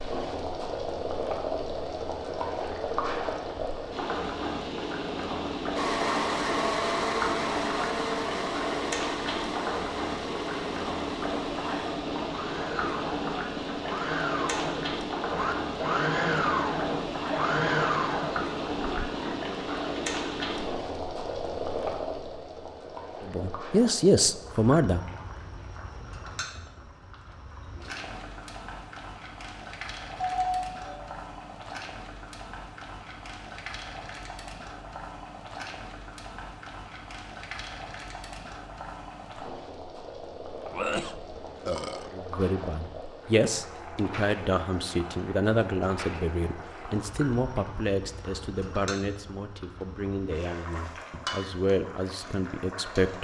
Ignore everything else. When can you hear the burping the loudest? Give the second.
41 s.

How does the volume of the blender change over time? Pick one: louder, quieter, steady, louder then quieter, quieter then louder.
quieter then louder.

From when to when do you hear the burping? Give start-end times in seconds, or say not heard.
18.7-19.6, 40.7-42.1.